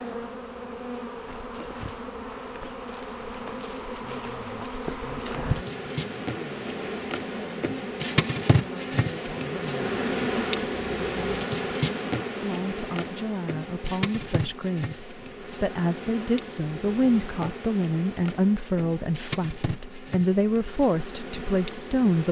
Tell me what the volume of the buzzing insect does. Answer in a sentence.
The loudness of the buzzing insect goes up, then down.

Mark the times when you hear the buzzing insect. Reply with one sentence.
You can hear the buzzing insect from 0.0 to 22.2 s.